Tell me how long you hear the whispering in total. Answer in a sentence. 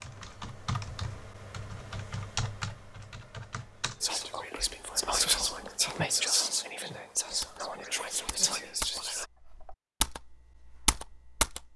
You can hear the whispering for 5 seconds altogether.